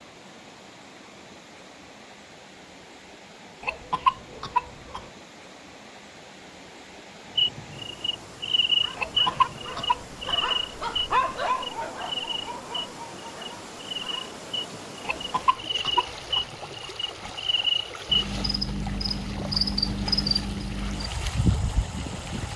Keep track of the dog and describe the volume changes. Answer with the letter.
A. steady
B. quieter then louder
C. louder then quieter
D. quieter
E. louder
C.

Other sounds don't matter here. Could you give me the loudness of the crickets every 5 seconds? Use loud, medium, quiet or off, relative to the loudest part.
off, loud, medium, loud, loud.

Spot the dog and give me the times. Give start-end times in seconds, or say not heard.
8.7-14.3.